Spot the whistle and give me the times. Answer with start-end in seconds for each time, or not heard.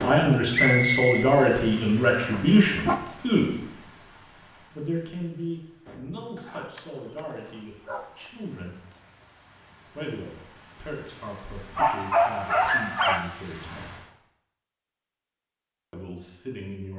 0.5-1.3.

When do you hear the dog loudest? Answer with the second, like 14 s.
12 s.